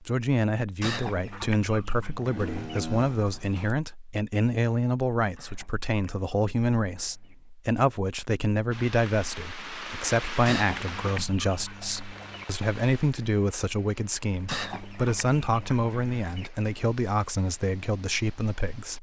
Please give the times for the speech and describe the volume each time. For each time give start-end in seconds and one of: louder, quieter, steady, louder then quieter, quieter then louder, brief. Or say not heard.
0.0-18.9 steady.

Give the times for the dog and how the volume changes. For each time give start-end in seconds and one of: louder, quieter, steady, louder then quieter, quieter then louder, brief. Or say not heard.
not heard.